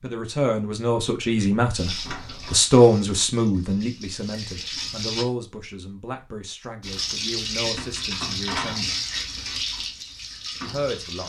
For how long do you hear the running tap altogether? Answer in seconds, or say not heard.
8 s.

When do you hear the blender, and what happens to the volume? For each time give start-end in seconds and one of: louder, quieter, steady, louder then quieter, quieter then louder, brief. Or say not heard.
not heard.